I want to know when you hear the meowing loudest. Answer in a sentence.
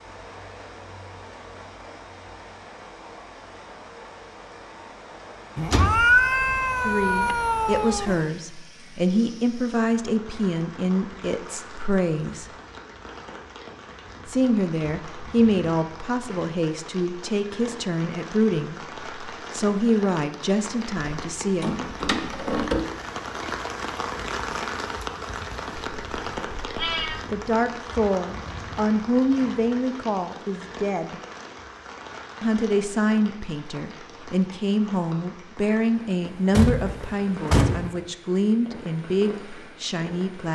The volume of the meowing peaks at 6 seconds.